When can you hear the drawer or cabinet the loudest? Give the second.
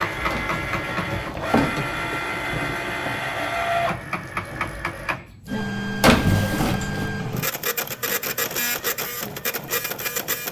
6 s.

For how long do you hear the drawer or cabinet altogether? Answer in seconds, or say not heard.
3 s.